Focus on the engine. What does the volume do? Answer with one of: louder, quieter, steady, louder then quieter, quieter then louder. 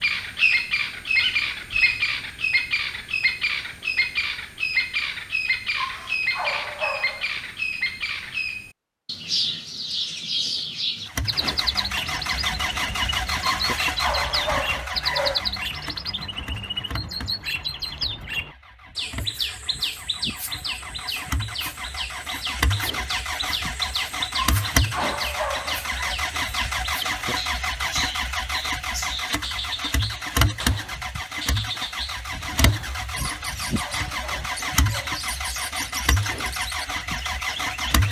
quieter then louder.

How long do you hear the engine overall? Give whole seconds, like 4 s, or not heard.
27 s.